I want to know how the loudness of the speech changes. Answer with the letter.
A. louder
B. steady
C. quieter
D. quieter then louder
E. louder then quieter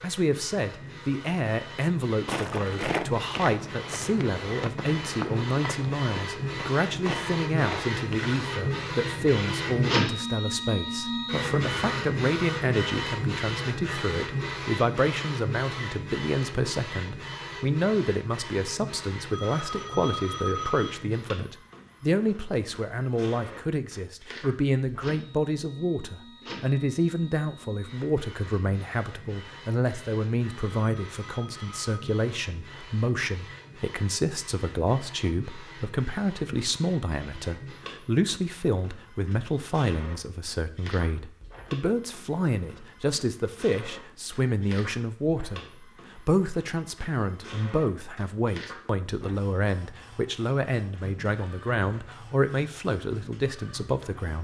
B.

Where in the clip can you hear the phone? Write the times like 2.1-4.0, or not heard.
19.3-21.0, 30.6-32.2.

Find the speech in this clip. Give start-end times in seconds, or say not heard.
0.0-54.3.